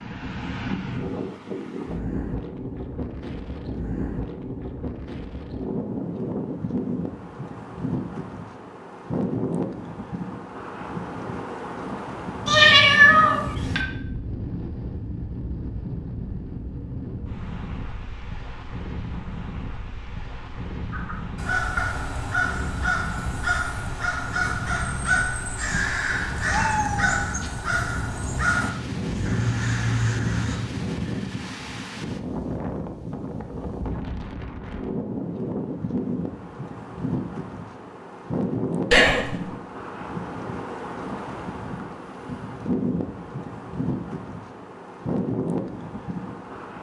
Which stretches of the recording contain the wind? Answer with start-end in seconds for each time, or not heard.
0.0-46.7.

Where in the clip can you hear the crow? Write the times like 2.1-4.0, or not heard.
20.9-30.6.